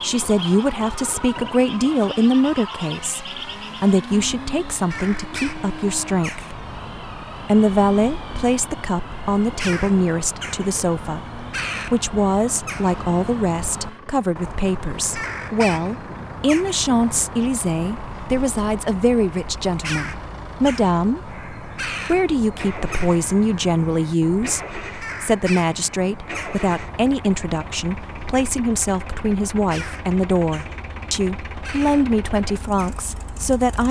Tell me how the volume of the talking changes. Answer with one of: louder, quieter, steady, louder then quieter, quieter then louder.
steady.